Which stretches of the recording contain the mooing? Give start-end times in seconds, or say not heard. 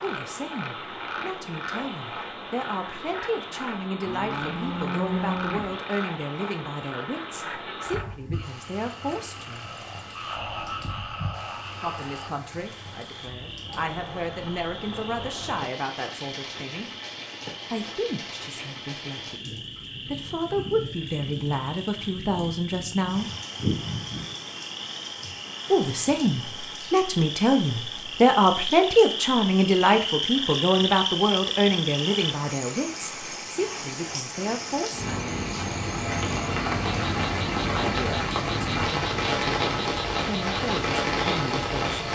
4.0-5.8.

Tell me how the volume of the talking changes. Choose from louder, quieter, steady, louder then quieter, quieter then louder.
louder then quieter.